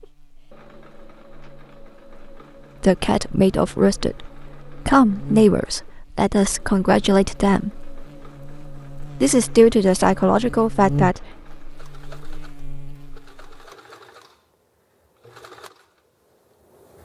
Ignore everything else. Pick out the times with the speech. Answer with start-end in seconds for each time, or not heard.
2.8-7.8, 9.2-11.2.